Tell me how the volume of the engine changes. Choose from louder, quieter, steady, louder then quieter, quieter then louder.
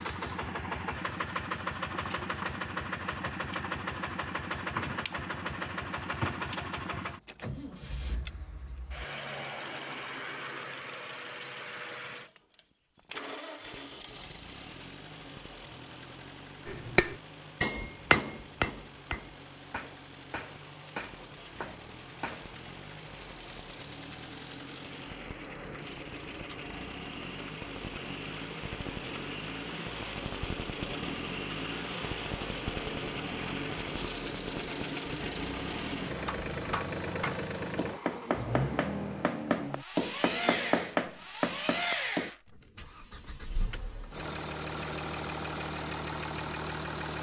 quieter then louder.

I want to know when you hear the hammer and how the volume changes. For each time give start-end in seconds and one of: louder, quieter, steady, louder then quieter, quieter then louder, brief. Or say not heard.
16.6-22.5 quieter
36.1-42.3 louder.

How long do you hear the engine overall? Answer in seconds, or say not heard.
47 s.